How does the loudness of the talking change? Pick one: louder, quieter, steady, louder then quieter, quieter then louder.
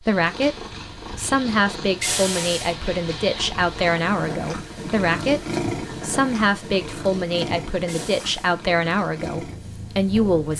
steady.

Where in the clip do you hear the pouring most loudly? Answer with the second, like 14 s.
2 s.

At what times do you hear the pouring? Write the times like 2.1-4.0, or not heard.
2.0-2.8, 7.8-8.6.